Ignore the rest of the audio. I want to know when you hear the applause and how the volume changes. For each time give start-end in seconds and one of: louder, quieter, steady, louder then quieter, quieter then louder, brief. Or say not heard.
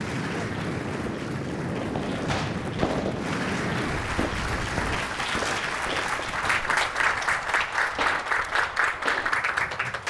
0.0-10.0 louder.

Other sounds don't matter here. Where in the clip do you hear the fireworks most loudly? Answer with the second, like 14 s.
3 s.